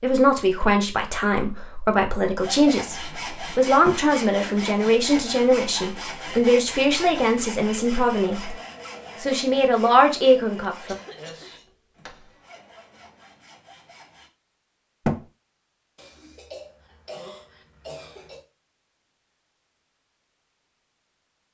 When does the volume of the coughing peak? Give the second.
17 s.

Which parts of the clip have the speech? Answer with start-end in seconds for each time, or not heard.
0.0-8.6, 9.2-10.9.